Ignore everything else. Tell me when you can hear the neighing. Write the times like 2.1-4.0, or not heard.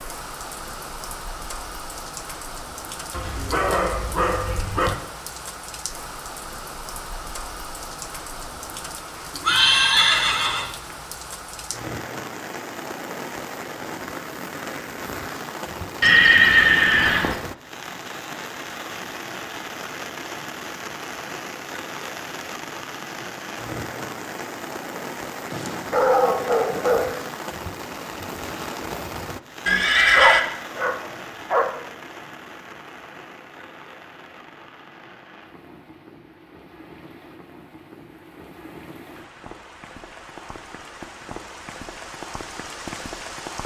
9.4-10.7, 16.0-17.4, 29.6-30.4.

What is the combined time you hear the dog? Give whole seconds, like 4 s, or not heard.
5 s.